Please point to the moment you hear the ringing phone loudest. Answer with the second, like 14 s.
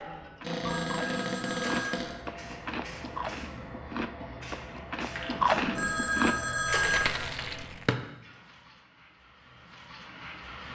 7 s.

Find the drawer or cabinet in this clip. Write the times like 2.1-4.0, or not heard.
0.4-2.1, 7.3-8.0.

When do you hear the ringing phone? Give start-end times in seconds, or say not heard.
0.7-2.2, 5.8-7.3.